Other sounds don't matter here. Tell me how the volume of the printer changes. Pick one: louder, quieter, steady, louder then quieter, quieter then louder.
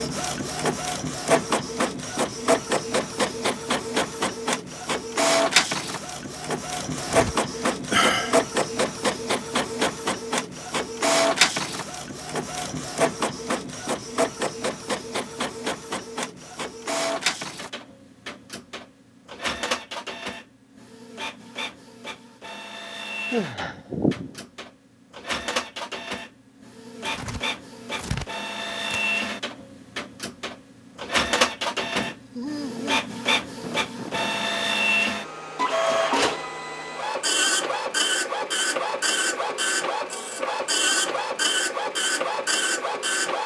quieter then louder.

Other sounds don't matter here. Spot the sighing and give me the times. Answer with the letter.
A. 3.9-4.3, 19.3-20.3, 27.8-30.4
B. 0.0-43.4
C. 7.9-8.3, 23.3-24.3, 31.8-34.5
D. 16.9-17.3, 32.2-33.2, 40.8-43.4
C.